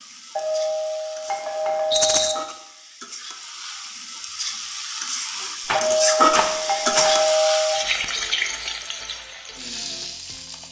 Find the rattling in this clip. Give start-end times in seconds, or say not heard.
1.9-2.4, 5.7-7.1.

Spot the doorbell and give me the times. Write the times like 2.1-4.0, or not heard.
0.3-2.4, 5.7-7.8.